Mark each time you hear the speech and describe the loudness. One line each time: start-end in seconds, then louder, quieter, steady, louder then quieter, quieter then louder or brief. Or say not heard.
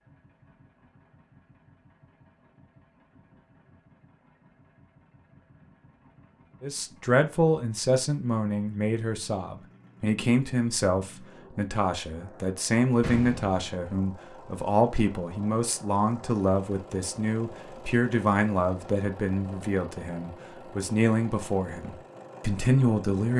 6.6-23.3 steady.